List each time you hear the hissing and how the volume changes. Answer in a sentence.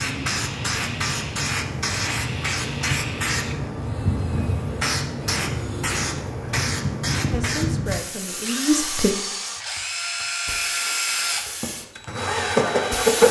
The hissing can be heard from 0.0 to 13.2 s, getting quieter.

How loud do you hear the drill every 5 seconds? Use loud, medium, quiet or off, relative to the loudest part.
quiet, medium, loud.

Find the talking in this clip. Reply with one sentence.
The talking can be heard from 7.3 to 9.2 s.